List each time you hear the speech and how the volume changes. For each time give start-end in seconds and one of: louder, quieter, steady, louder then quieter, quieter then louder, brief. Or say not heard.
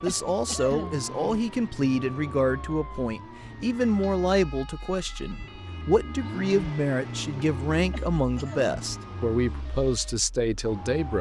0.0-11.1 steady.